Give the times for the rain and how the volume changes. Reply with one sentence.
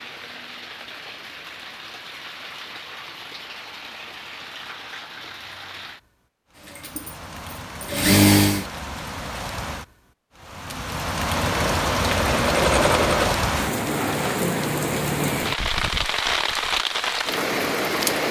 You can hear the rain from 0.0 to 18.2 s, getting louder.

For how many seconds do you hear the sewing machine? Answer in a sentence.
The sewing machine can be heard for 5 seconds in total.